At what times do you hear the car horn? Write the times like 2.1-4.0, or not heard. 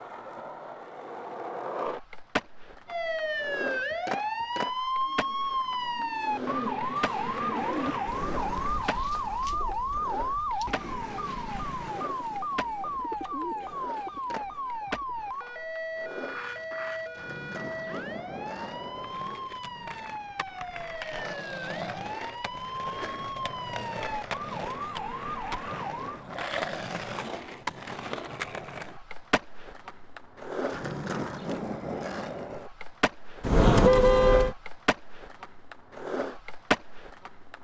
33.4-34.5.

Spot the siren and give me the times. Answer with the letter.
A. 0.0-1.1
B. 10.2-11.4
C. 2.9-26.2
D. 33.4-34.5
C.